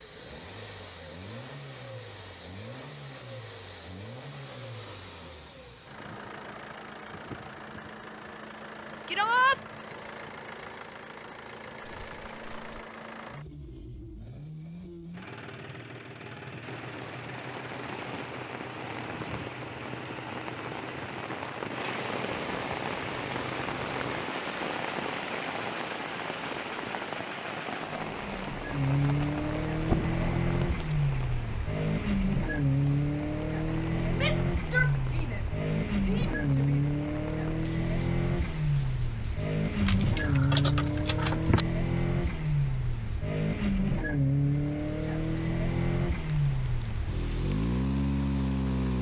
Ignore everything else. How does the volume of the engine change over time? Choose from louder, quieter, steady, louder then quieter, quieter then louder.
louder.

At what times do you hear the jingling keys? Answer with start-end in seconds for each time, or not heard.
11.8-12.8, 29.9-30.9, 39.8-41.6.